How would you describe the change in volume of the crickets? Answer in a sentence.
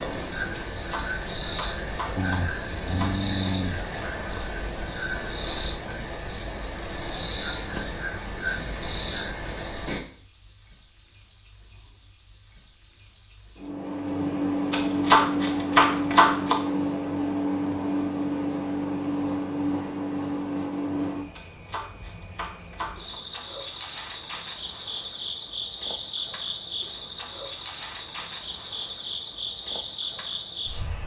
The volume of the crickets stays about the same.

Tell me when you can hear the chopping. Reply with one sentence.
You can hear the chopping from 0.7 to 3.2 s, from 14.7 to 16.6 s and from 21.3 to 23.2 s.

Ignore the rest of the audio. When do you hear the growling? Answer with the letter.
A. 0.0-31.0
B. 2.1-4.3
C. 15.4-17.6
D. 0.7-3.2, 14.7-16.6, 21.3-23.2
B.